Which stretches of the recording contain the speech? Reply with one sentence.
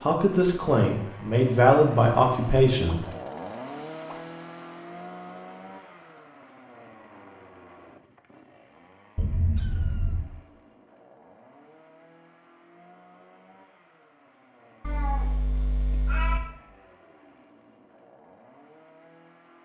The speech can be heard from 0.0 to 3.0 s.